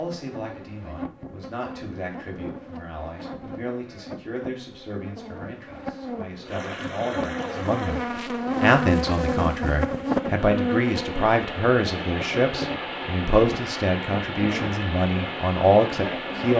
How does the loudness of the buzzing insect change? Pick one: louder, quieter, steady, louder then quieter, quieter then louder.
louder then quieter.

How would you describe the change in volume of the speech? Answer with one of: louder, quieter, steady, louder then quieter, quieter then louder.
louder.